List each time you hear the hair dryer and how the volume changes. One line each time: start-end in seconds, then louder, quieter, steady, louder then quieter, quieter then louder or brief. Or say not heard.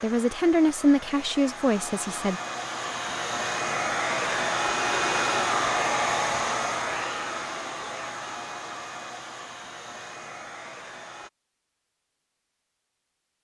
0.0-11.3 louder then quieter.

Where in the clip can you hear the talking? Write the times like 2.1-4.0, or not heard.
0.0-2.4.